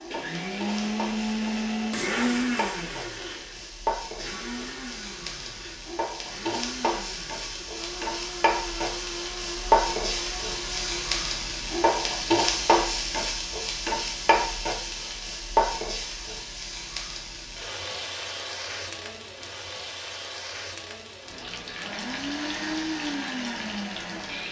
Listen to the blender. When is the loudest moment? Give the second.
2 s.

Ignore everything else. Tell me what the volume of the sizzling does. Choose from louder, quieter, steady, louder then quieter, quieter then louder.
louder then quieter.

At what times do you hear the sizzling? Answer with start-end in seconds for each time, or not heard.
0.0-24.4.